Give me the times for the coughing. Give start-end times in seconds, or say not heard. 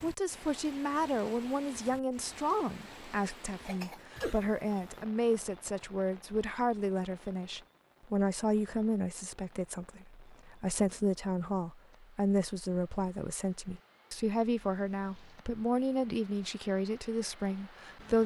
3.6-4.4.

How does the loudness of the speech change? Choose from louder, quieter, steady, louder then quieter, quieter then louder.
steady.